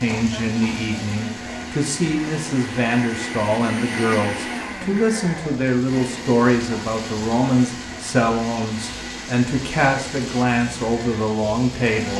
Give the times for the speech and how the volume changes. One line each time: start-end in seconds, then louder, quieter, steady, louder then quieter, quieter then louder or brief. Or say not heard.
0.0-12.1 steady.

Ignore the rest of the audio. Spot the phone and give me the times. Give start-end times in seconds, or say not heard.
not heard.